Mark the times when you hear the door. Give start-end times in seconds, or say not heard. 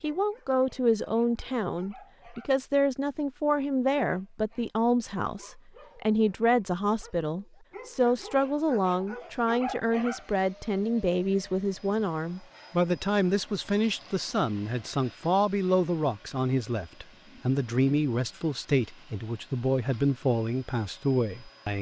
not heard.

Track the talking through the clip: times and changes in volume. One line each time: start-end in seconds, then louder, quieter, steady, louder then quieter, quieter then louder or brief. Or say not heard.
0.0-21.7 steady.